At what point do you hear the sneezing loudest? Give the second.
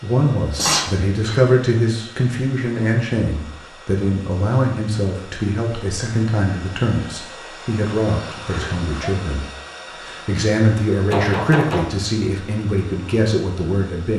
1 s.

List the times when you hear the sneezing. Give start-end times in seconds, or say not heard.
0.5-1.4, 8.4-9.0.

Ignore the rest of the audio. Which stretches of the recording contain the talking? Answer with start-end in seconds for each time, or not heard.
0.0-14.1.